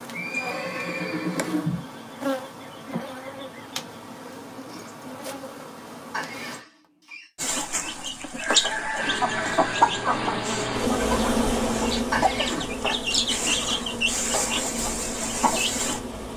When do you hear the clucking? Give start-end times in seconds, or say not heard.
7.3-16.0.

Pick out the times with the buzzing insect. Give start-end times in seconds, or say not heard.
0.0-6.6, 8.9-16.3.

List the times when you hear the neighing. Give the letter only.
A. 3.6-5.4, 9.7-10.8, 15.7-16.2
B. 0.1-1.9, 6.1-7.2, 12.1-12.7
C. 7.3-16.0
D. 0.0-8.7
B.